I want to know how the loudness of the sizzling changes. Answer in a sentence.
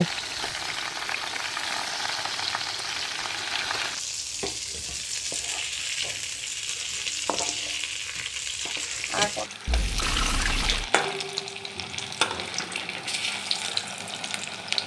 The loudness of the sizzling stays about the same.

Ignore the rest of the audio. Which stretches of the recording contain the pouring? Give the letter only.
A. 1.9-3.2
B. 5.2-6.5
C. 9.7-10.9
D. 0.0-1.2
C.